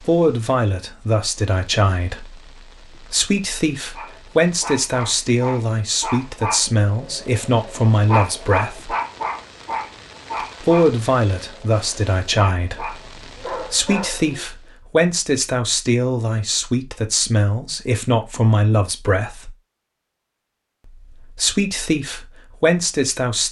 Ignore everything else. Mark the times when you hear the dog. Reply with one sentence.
You can hear the dog from 4.0 to 14.4 s.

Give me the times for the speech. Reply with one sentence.
You can hear the speech from 0.0 to 8.9 s, from 10.6 to 19.5 s and from 21.0 to 23.4 s.